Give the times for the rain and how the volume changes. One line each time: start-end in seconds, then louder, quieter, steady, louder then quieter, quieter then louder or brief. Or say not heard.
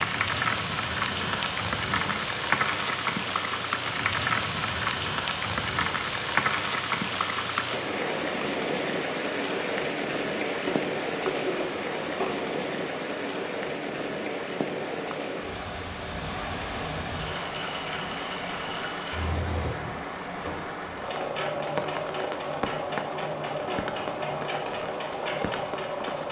0.0-26.2 quieter.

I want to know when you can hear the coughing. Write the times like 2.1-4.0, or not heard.
10.7-12.5.